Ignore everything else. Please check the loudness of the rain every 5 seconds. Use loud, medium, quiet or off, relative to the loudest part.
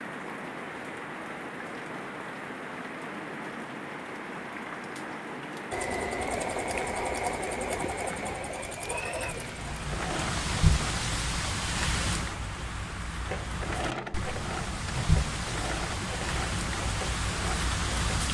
medium, medium, loud, loud.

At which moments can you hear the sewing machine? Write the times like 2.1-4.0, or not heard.
5.7-11.1, 13.2-18.3.